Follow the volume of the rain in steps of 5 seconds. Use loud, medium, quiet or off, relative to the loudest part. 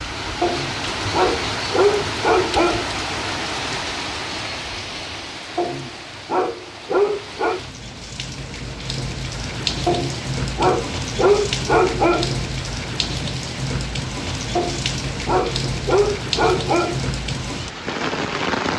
loud, medium, loud, loud.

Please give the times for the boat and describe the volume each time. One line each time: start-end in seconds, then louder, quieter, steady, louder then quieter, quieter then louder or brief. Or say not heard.
not heard.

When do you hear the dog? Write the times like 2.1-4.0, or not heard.
0.4-2.9, 5.5-7.6, 9.8-12.4, 14.6-17.0.